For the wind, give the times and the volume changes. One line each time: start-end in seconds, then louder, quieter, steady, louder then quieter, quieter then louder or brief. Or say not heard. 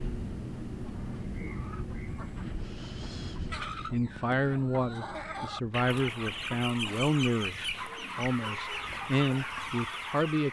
0.0-6.5 quieter.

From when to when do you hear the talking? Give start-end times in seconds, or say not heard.
3.9-10.4.